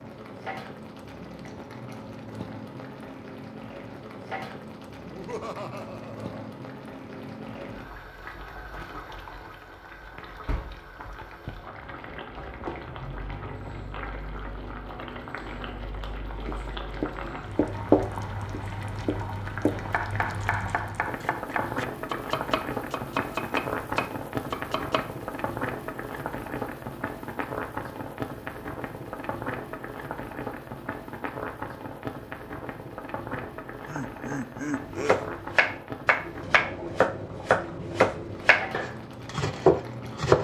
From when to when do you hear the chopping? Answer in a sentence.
You can hear the chopping from 16.4 to 25.1 s and from 34.9 to 40.3 s.